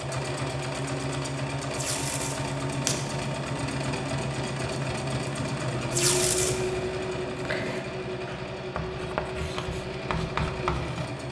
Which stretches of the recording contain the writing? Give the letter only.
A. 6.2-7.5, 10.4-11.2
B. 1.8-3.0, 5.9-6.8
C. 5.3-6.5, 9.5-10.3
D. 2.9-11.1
D.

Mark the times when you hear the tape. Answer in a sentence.
You can hear the tape from 1.8 to 3.0 s and from 5.9 to 6.8 s.